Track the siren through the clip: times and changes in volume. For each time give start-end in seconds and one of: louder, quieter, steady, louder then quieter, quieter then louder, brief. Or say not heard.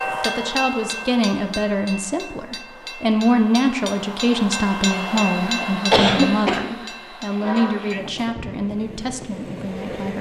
not heard.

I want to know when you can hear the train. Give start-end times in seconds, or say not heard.
0.0-10.1.